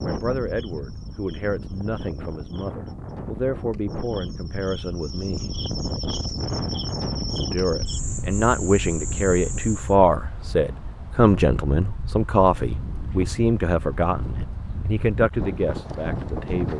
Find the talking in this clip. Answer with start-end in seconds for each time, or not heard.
0.0-5.5, 7.3-16.7.